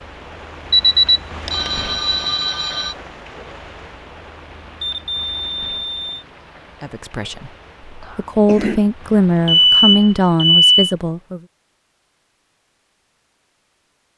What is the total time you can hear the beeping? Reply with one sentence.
The beeping can be heard for 5 seconds in total.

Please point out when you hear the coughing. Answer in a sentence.
The coughing can be heard from 8.0 to 8.8 s.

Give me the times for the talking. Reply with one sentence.
The talking can be heard from 6.8 to 11.4 s.